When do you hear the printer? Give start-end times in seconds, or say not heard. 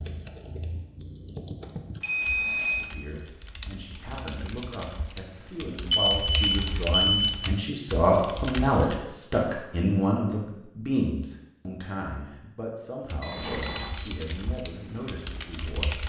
not heard.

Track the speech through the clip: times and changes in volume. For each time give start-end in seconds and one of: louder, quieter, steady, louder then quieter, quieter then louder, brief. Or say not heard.
2.8-15.9 louder then quieter.